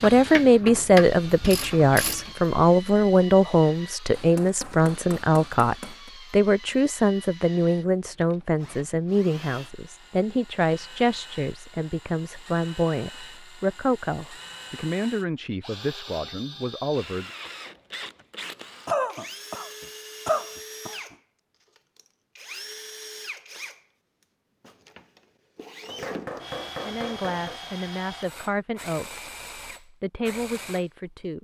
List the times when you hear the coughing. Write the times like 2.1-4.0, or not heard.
18.9-20.9.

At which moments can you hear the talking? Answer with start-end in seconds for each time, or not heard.
0.0-17.3, 26.8-31.3.